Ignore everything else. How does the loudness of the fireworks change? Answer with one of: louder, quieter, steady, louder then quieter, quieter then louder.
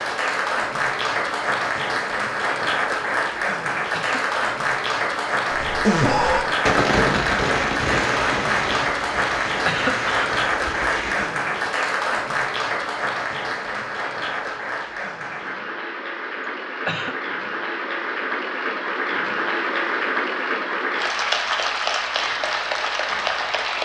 quieter.